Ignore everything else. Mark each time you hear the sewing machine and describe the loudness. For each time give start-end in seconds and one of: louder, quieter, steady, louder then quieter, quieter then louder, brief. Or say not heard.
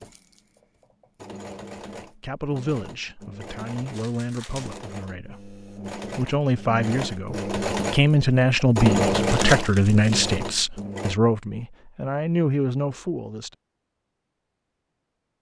0.0-11.2 louder.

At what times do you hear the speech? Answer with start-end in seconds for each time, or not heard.
2.1-13.6.